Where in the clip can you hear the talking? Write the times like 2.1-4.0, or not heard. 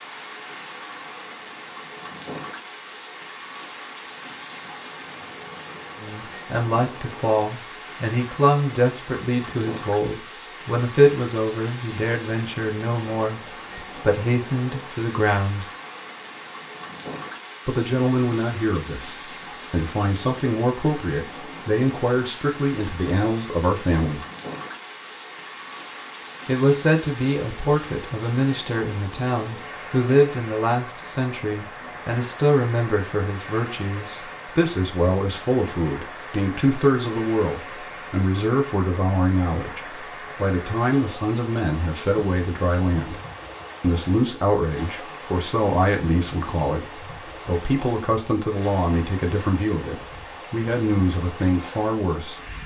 6.0-15.7, 17.6-24.2, 26.4-43.2, 43.8-52.6.